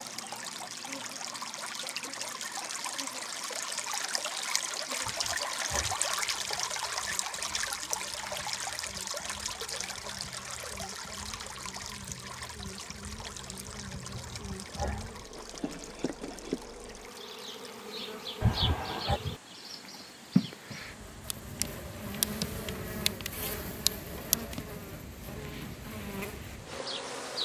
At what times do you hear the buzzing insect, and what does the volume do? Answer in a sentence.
You can hear the buzzing insect from 0.0 to 27.3 s, getting louder.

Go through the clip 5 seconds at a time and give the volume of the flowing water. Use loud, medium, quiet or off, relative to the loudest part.
loud, loud, medium, quiet, quiet, quiet.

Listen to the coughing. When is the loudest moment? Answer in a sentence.
The loudest moment of the coughing is at 19 seconds.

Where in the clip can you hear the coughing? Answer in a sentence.
The coughing can be heard from 5.0 to 6.0 s, from 14.1 to 15.1 s and from 18.4 to 19.2 s.